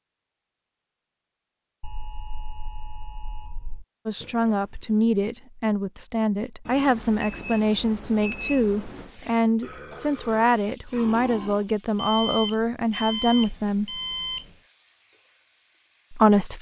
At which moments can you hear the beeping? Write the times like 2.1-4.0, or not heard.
1.8-3.9, 6.7-9.1, 11.9-14.6.